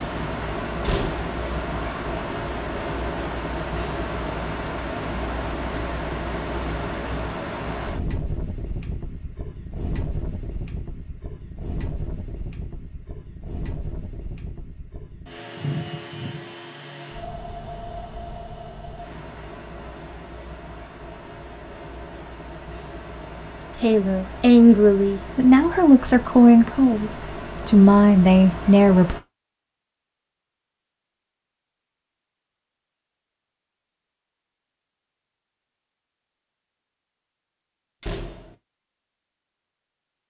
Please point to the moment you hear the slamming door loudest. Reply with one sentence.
The volume of the slamming door peaks at 1 second.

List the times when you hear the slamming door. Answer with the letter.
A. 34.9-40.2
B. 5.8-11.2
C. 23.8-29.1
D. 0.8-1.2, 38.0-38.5
D.